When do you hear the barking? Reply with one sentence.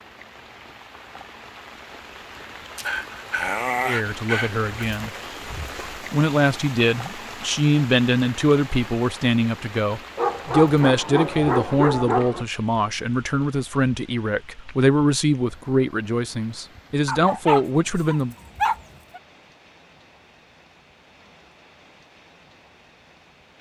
You can hear the barking from 2.8 to 4.7 s, from 10.2 to 12.4 s and from 17.1 to 19.2 s.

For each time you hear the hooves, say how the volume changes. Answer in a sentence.
You can't hear the hooves here.